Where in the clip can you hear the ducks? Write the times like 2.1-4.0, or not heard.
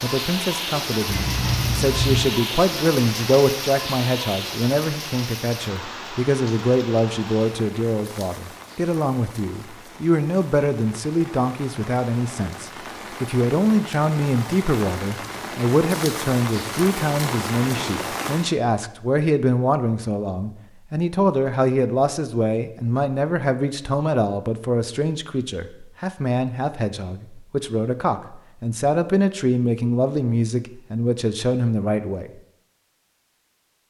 not heard.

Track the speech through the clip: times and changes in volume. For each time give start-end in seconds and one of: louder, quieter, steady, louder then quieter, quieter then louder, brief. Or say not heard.
0.0-32.3 steady.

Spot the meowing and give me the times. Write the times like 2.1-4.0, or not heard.
1.1-2.3.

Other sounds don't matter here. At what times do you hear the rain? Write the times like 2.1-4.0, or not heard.
0.0-18.6.